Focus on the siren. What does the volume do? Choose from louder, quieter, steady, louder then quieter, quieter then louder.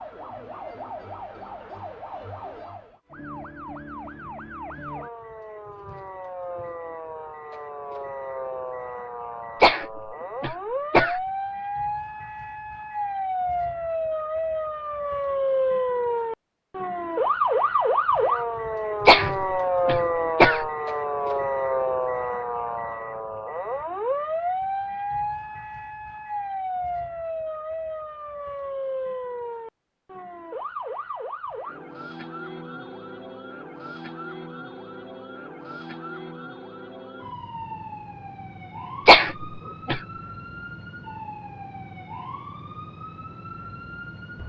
louder then quieter.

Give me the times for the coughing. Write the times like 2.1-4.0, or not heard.
9.6-11.2, 19.1-20.6, 39.0-40.0.